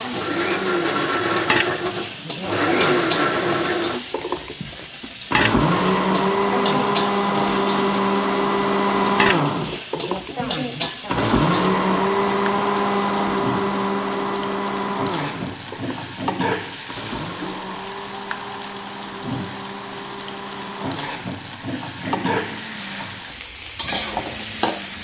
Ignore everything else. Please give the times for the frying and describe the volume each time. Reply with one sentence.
The frying can be heard from 0.0 to 25.0 s, at a steady volume.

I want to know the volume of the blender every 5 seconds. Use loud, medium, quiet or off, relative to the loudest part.
loud, loud, loud, quiet, quiet.